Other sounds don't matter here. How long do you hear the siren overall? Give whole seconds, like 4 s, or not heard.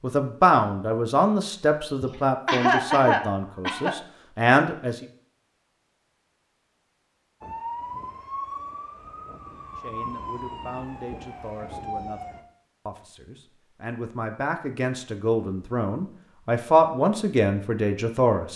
5 s.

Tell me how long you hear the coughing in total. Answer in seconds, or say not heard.
2 s.